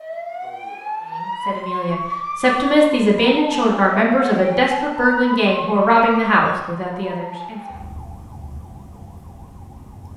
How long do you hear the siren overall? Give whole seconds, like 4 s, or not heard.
10 s.